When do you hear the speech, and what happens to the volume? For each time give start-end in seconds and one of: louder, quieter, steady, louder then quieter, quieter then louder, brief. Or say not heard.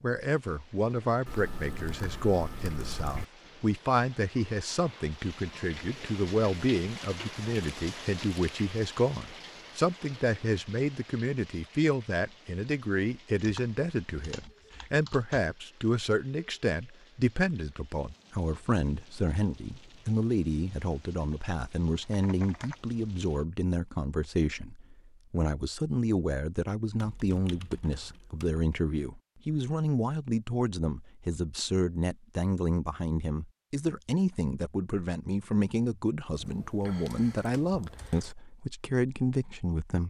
0.0-40.0 steady.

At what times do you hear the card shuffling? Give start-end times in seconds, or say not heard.
not heard.